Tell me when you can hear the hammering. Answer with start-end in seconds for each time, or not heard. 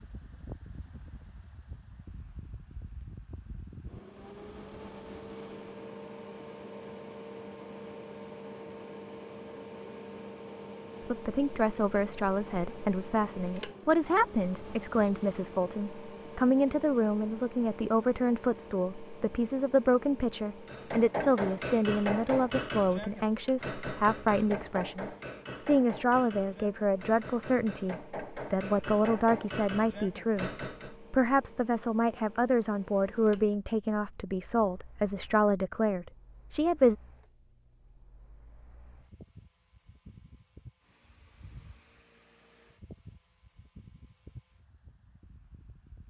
20.6-30.9.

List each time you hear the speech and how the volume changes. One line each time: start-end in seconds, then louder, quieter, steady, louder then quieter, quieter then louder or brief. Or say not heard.
11.0-37.0 steady.